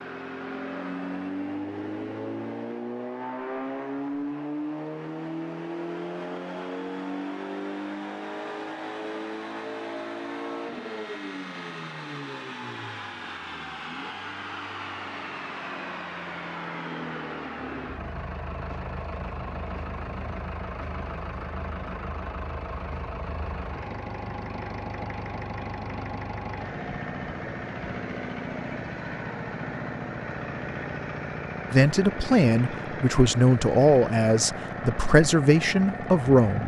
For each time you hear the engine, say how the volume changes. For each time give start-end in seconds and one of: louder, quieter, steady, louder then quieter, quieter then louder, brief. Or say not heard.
0.0-36.6 steady.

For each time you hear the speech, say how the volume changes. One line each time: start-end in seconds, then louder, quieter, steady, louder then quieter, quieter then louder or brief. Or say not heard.
31.7-36.6 steady.